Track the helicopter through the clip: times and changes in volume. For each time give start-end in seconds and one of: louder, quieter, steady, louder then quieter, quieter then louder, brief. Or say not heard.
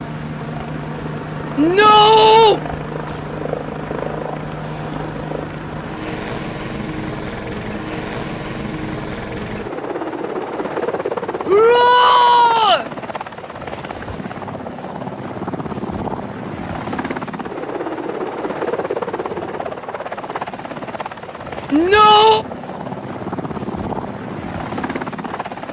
0.0-25.6 steady.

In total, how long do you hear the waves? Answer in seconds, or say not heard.
not heard.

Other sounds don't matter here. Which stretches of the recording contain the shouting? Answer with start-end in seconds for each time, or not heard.
1.6-2.6, 11.4-12.8, 21.7-22.4.